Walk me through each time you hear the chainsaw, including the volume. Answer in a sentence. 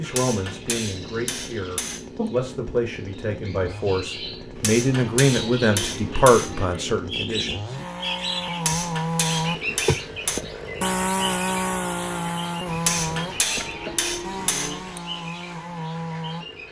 The chainsaw can be heard from 0.0 to 16.6 s, getting louder then quieter.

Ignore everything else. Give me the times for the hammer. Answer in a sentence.
You can hear the hammer from 0.1 to 2.0 s, from 4.6 to 6.5 s, from 8.7 to 10.4 s and from 12.8 to 15.0 s.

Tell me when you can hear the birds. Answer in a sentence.
You can hear the birds from 0.0 to 16.6 s.